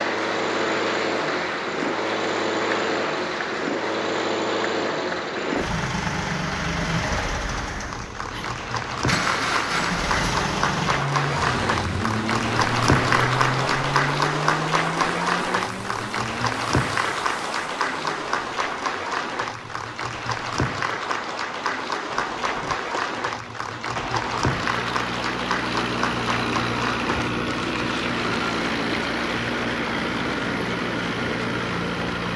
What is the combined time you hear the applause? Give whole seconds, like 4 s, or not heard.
32 s.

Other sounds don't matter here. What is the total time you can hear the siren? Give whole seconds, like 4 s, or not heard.
not heard.